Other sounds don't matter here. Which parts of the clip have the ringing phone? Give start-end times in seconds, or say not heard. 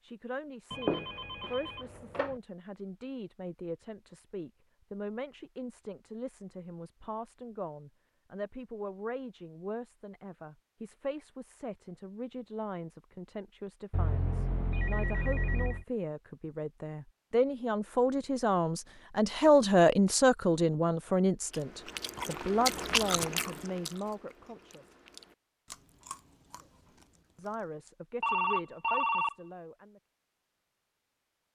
0.7-2.4, 13.9-15.8, 28.2-29.4.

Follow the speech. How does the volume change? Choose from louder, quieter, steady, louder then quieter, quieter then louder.
louder then quieter.